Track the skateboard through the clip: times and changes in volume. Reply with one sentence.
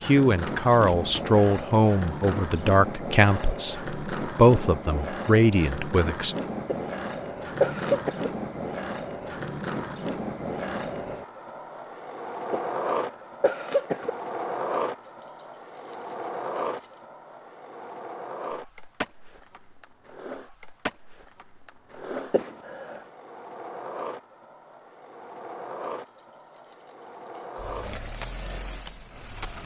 The skateboard can be heard from 0.0 to 29.6 s, getting quieter.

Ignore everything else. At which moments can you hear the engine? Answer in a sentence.
The engine can be heard from 27.6 to 29.6 s.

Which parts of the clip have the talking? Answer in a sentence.
You can hear the talking from 0.0 to 6.3 s.